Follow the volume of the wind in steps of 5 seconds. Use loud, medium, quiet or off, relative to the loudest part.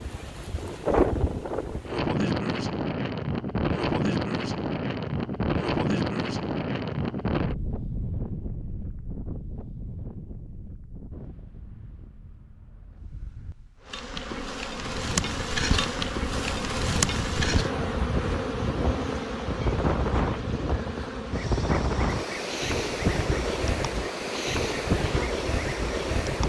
loud, loud, quiet, medium, loud, loud.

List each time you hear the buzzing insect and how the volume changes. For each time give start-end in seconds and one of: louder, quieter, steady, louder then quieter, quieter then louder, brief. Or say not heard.
13.8-26.4 quieter.